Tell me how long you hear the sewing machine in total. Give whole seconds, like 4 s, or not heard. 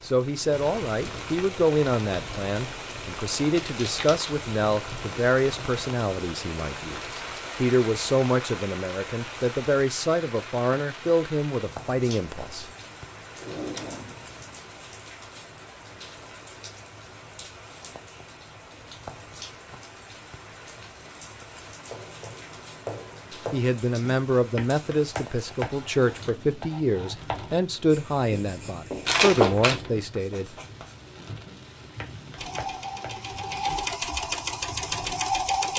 3 s.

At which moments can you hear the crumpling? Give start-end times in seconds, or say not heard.
3.6-4.3, 29.1-29.8.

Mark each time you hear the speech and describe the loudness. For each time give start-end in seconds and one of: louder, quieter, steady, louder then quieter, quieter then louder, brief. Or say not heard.
0.0-12.7 steady
23.5-30.5 steady.